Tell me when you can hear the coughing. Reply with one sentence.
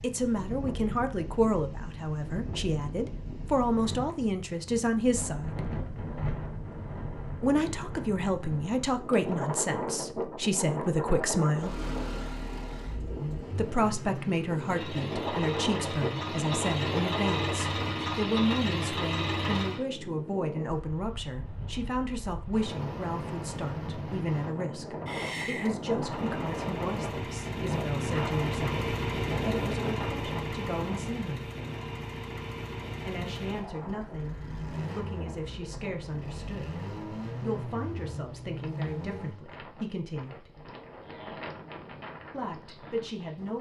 You can hear the coughing from 25.1 to 25.8 s.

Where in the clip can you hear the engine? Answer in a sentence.
You can hear the engine from 11.6 to 19.9 s and from 26.0 to 39.5 s.